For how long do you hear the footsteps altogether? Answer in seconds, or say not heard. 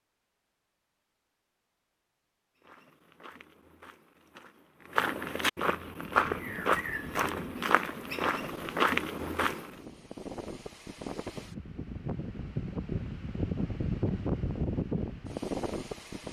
7 s.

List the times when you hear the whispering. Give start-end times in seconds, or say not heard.
not heard.